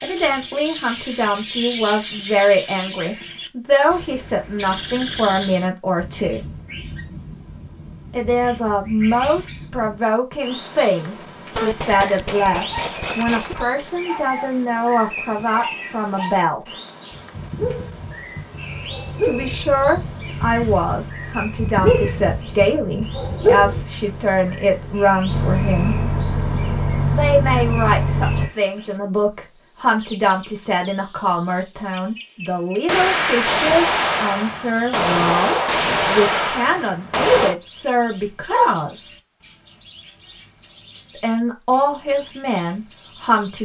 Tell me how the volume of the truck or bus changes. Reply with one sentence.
The loudness of the truck or bus goes up.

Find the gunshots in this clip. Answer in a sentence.
You can hear the gunshots from 11.6 to 13.6 s and from 32.9 to 37.5 s.